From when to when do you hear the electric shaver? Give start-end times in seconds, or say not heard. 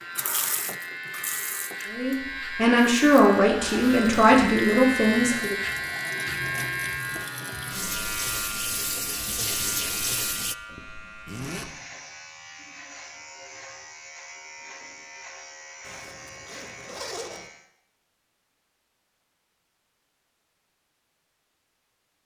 0.0-17.7.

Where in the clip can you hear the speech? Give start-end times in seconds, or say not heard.
1.9-5.5.